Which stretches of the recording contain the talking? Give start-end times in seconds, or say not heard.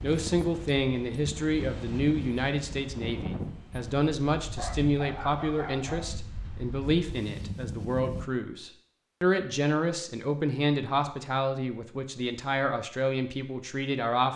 0.0-14.3.